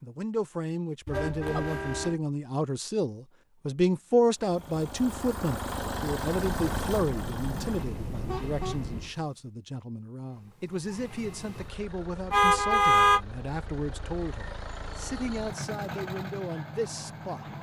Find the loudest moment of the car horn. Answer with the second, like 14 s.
13 s.